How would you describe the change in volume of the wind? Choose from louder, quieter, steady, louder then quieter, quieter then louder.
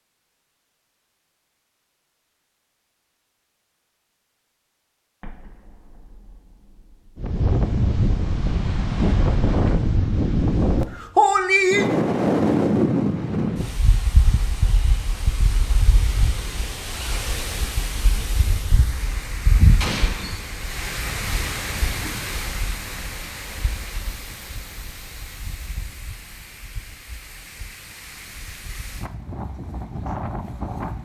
quieter.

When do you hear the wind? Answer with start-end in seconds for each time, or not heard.
7.2-31.0.